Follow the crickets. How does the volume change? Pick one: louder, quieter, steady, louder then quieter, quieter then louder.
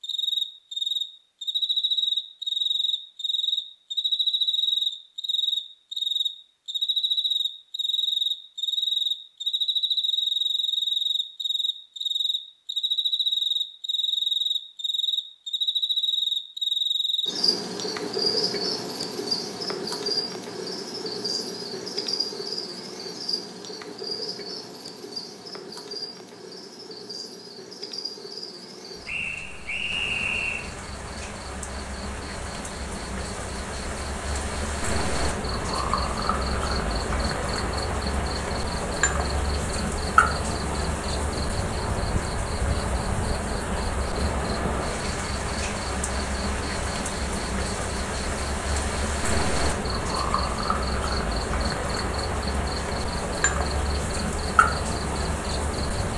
quieter then louder.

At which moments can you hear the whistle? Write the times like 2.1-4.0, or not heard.
29.1-30.7.